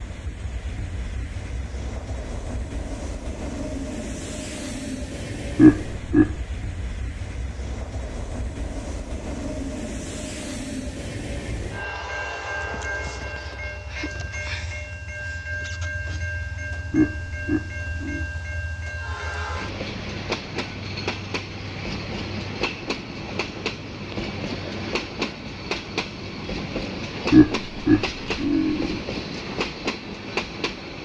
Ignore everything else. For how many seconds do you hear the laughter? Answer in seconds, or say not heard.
4 s.